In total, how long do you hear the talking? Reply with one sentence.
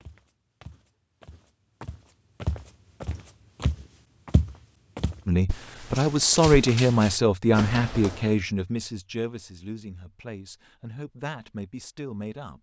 You can hear the talking for 7 seconds altogether.